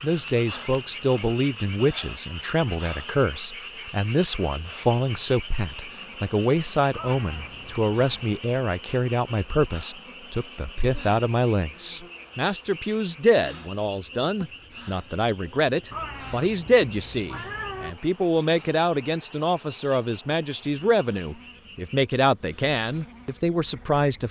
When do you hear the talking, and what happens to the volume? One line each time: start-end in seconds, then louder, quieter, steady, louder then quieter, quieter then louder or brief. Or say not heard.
0.0-24.2 steady.